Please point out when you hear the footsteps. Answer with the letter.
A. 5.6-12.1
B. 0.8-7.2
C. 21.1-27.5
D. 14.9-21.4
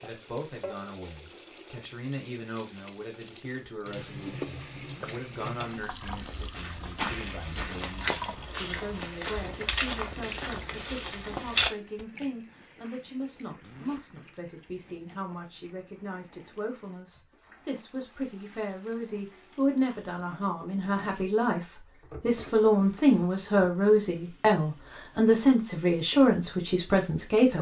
A.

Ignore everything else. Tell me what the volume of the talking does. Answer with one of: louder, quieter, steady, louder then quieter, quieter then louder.
louder.